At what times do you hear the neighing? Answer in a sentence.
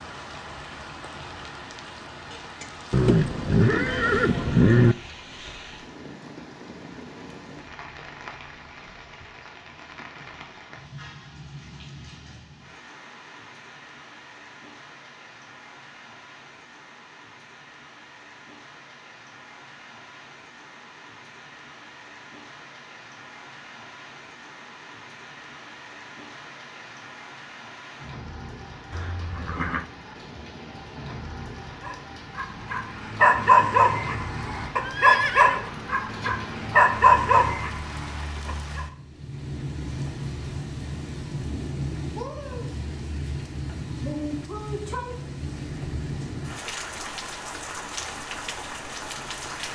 You can hear the neighing from 2.9 to 5.0 s, from 28.9 to 29.9 s and from 34.8 to 36.3 s.